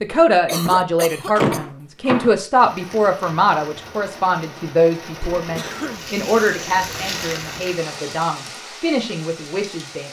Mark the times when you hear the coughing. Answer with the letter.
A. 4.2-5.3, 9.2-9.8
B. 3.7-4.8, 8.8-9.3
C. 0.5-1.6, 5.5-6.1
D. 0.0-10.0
C.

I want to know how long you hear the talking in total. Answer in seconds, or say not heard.
10 s.